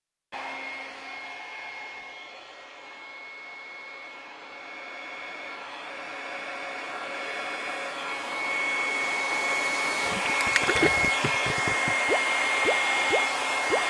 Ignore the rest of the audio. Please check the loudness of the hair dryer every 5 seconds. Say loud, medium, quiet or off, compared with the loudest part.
quiet, medium, loud.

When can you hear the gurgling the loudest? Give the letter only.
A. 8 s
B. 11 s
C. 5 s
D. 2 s
B.